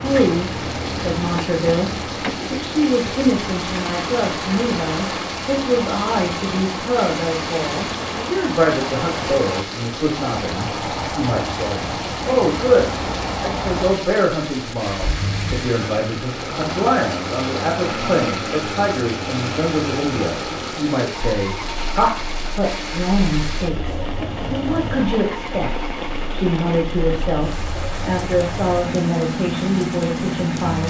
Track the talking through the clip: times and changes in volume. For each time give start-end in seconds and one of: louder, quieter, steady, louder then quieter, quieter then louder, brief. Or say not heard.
0.0-30.8 steady.